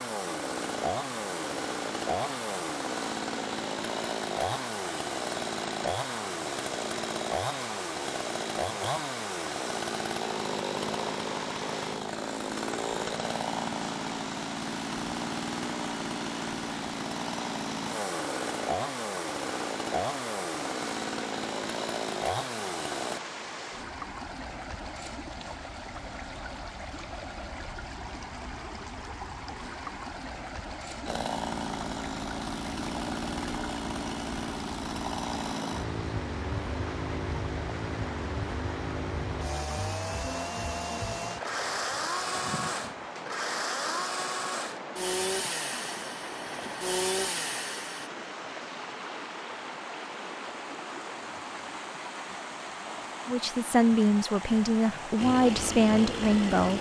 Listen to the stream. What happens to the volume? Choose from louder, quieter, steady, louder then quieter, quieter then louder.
steady.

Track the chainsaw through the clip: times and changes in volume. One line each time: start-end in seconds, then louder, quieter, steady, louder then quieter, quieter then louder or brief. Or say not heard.
0.0-23.2 steady
31.1-48.1 steady
55.1-56.7 brief.